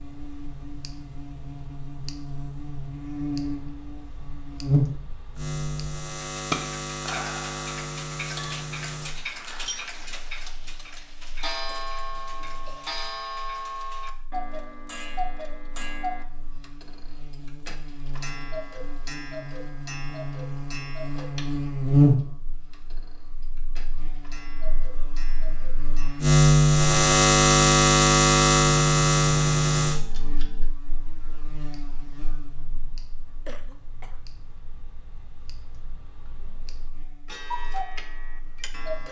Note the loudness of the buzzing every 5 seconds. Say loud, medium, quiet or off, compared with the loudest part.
quiet, quiet, quiet, quiet, medium, loud, quiet, quiet.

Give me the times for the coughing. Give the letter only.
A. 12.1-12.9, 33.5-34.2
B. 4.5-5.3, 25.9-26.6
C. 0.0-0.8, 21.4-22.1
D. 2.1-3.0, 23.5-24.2
A.